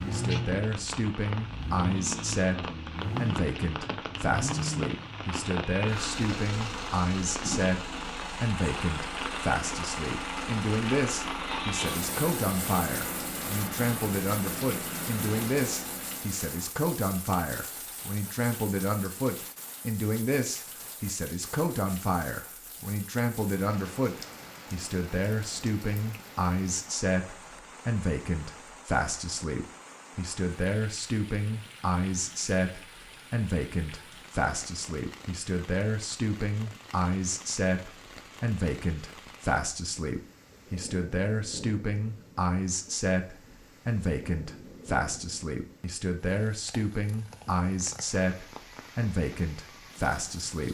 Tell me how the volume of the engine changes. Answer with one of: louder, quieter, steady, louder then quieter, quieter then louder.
steady.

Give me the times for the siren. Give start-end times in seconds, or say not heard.
not heard.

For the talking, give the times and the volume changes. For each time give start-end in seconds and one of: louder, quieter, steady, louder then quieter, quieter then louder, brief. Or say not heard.
0.1-50.6 steady.